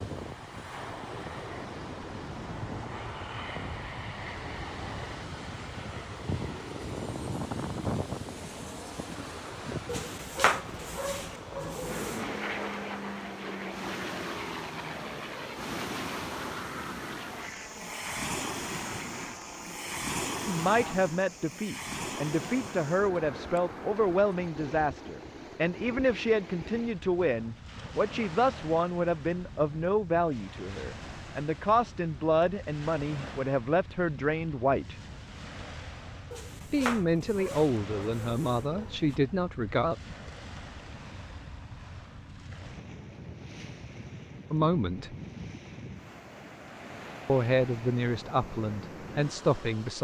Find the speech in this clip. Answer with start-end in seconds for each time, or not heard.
20.4-35.0, 36.7-40.0, 44.5-45.1, 47.2-49.9.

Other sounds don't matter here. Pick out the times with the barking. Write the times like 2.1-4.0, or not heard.
9.8-12.4, 36.3-39.2.